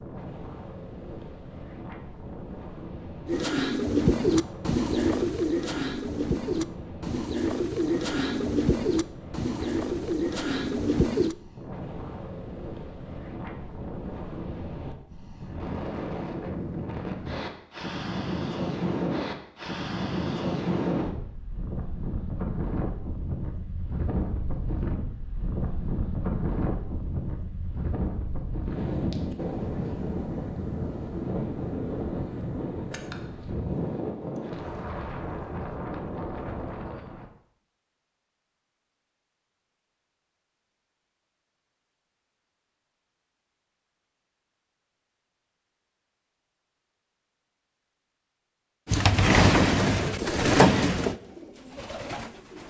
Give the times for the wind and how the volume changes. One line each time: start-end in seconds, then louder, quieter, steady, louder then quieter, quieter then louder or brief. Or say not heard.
0.0-37.3 louder.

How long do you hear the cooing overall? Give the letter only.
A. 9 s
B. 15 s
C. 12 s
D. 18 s
C.